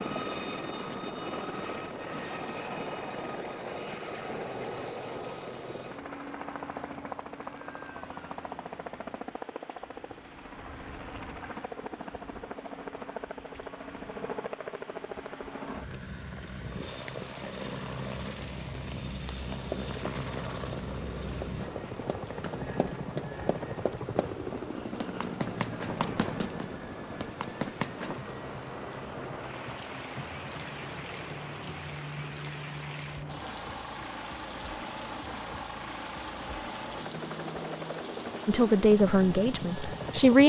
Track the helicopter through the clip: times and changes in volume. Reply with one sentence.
You can hear the helicopter from 0.0 to 40.4 s, at a steady volume.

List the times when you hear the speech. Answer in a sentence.
The speech can be heard from 38.5 to 40.4 s.